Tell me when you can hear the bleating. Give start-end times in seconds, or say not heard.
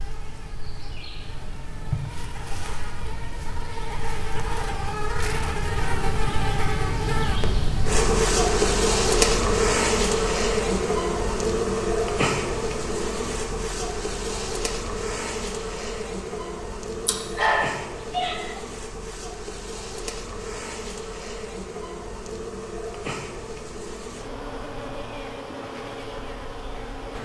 not heard.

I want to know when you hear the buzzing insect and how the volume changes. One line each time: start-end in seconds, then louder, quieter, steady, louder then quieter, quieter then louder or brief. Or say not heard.
0.0-27.2 louder then quieter.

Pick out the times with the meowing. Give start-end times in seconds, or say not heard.
17.1-18.6.